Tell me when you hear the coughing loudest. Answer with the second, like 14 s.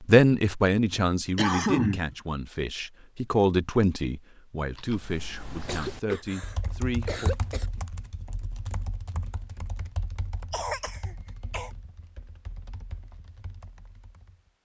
2 s.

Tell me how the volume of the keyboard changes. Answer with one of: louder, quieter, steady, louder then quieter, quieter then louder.
quieter.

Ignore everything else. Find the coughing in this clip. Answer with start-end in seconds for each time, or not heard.
1.4-2.1, 5.7-7.7, 10.5-11.7.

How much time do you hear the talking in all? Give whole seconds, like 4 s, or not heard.
7 s.